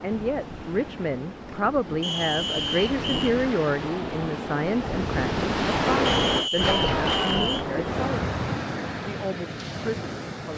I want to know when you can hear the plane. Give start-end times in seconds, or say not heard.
not heard.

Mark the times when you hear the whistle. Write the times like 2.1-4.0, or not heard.
2.0-3.4, 6.0-7.7.